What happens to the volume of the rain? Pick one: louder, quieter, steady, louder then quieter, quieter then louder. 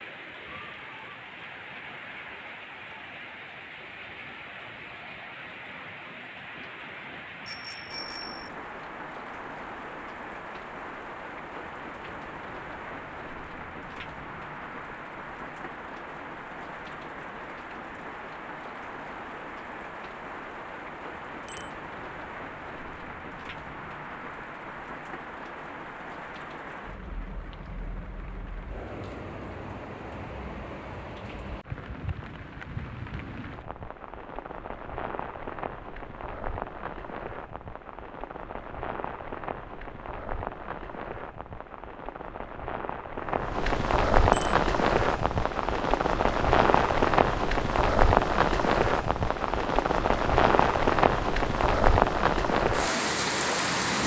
louder.